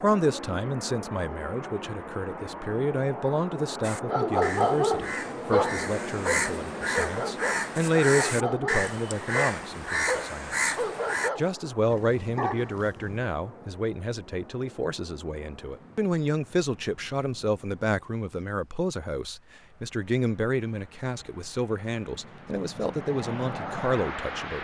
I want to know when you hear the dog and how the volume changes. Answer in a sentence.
You can hear the dog from 4.0 to 13.2 s, getting quieter.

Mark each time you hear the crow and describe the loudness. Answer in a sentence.
You can hear the crow from 3.8 to 11.3 s, getting louder.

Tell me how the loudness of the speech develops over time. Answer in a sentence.
The volume of the speech stays about the same.